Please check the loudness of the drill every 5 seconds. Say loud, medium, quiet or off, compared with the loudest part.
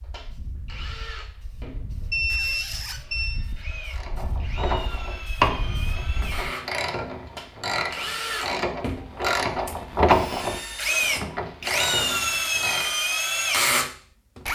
quiet, medium, loud.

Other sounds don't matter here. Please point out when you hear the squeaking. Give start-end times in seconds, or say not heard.
2.2-3.0.